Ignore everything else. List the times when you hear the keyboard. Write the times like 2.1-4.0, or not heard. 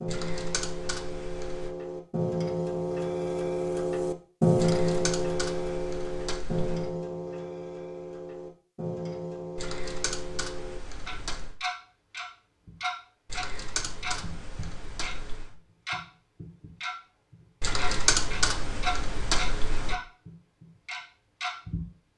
0.1-1.8, 4.5-7.0, 9.6-11.6, 13.2-15.6, 17.6-19.9.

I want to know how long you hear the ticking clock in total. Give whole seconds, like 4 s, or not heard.
21 s.